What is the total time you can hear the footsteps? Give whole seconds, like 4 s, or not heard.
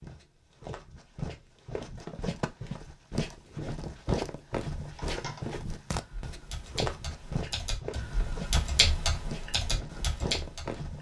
11 s.